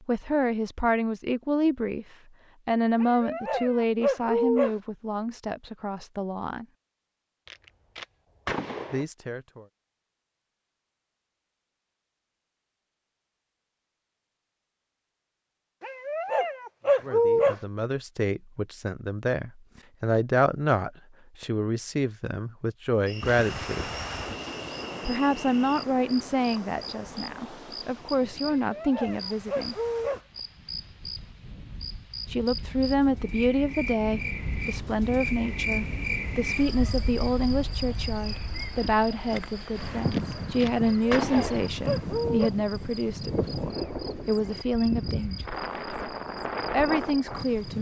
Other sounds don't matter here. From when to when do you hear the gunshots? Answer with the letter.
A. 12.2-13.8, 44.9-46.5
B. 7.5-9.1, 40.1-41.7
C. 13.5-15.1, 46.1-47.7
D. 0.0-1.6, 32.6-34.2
B.